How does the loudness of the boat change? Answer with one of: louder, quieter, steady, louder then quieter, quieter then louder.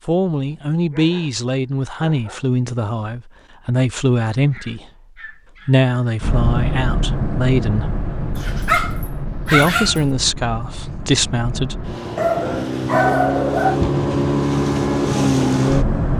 quieter then louder.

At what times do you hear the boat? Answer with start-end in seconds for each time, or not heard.
6.2-16.1.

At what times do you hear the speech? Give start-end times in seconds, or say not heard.
0.1-4.8, 5.7-8.0, 9.4-11.8.